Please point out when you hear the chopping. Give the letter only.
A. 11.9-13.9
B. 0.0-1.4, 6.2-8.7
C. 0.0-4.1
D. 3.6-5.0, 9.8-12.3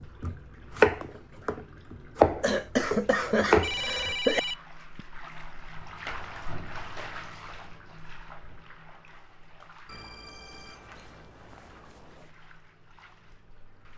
C.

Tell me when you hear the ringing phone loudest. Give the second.
4 s.